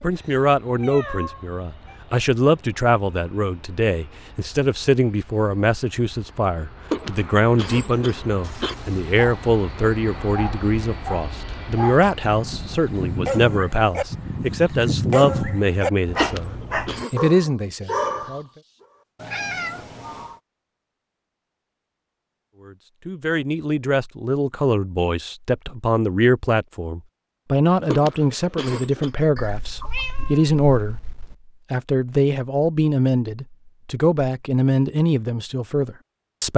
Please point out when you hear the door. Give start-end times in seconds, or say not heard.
not heard.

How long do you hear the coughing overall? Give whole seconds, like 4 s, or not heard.
4 s.